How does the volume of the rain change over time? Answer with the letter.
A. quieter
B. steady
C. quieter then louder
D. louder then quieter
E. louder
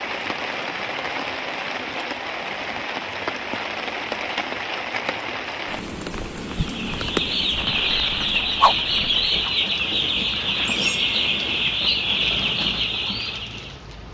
A.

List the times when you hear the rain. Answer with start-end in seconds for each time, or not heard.
0.0-14.1.